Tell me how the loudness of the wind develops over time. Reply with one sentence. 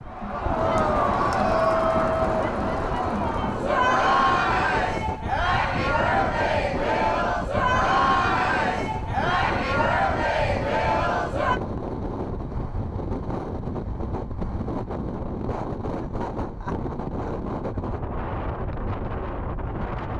The loudness of the wind stays about the same.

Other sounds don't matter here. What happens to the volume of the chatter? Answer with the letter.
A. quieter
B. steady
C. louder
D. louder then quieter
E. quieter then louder
B.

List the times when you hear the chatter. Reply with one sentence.
The chatter can be heard from 0.0 to 11.6 s.